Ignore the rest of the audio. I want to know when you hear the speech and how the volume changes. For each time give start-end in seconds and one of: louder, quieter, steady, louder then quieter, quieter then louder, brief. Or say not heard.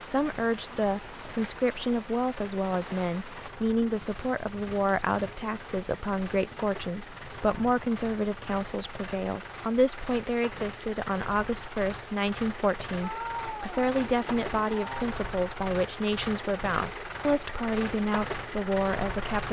0.0-19.4 steady.